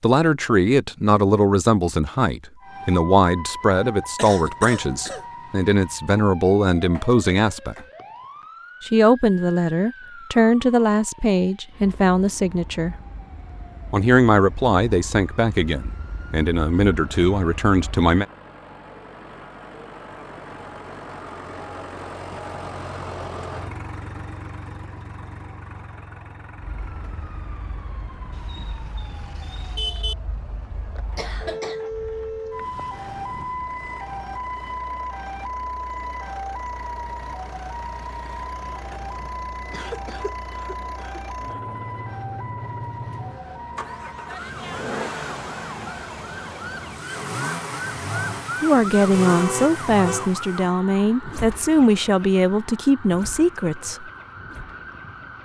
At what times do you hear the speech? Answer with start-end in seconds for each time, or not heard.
0.0-7.8, 8.8-12.9, 13.9-18.2, 48.6-54.0.